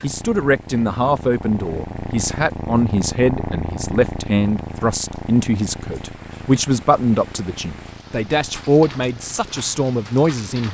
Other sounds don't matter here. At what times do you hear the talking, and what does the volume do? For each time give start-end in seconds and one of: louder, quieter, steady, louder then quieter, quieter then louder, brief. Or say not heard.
0.0-10.6 steady.